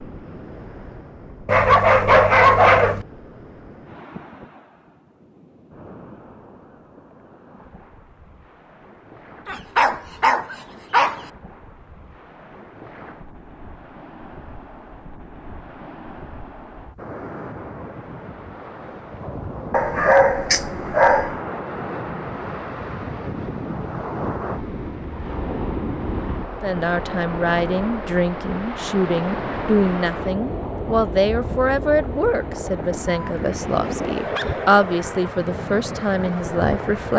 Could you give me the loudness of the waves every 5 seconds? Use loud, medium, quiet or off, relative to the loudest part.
quiet, quiet, quiet, medium, loud, loud, loud, loud.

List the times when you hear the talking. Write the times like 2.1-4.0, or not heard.
26.6-37.1.